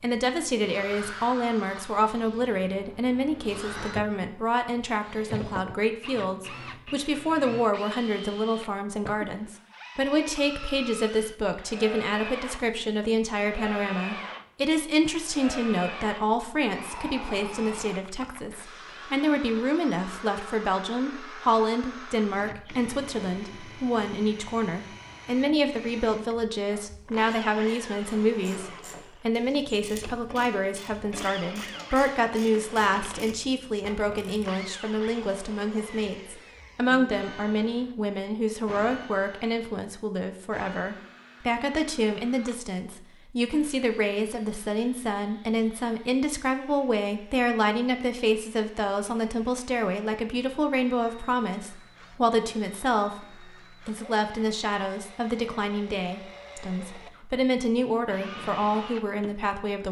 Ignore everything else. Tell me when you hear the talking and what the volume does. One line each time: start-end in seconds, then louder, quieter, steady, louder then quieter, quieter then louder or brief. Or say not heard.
0.0-59.8 steady.